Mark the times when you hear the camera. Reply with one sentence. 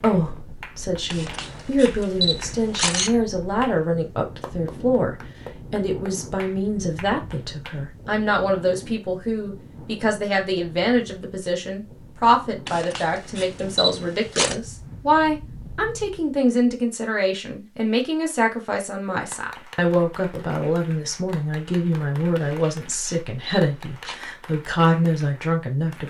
You can hear the camera from 1.1 to 3.1 s, from 12.7 to 14.6 s and from 22.4 to 24.2 s.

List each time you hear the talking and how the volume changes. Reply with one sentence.
The talking can be heard from 0.0 to 26.0 s, at a steady volume.